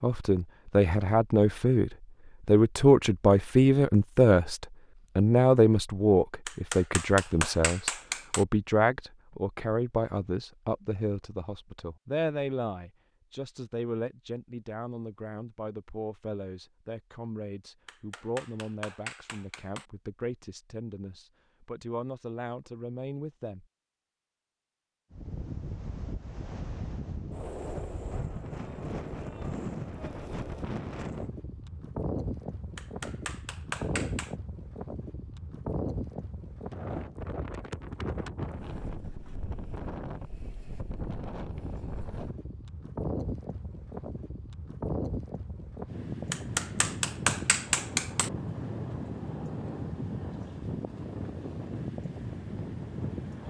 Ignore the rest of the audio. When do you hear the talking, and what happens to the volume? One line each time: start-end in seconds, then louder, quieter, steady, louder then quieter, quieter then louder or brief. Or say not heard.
0.0-23.6 quieter.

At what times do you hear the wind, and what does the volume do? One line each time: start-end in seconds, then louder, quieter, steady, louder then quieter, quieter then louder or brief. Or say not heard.
25.1-53.4 steady.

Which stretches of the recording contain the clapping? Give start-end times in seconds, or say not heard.
6.5-8.4, 17.9-19.9, 32.8-34.4, 46.3-48.3.